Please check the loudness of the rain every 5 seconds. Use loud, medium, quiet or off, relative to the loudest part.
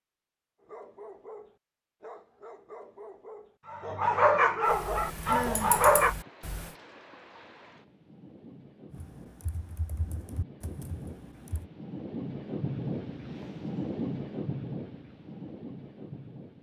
off, quiet, loud, medium.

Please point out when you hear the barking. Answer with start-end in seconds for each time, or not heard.
0.6-6.2.